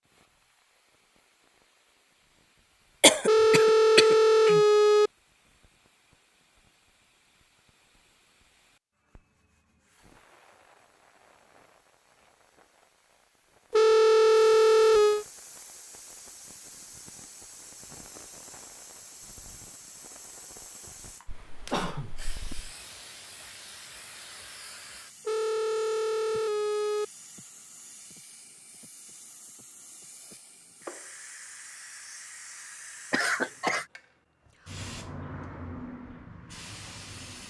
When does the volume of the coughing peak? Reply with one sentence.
The loudest moment of the coughing is at 3 seconds.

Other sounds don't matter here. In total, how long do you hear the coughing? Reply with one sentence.
You can hear the coughing for 4 seconds altogether.